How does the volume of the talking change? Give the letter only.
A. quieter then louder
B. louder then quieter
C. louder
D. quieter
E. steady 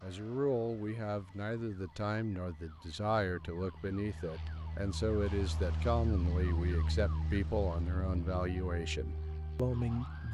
E.